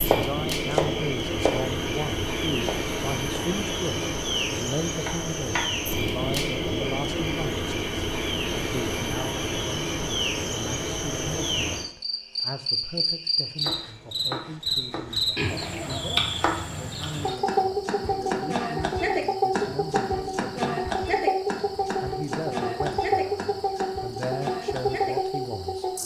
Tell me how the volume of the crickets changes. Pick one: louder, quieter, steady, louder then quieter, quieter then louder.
steady.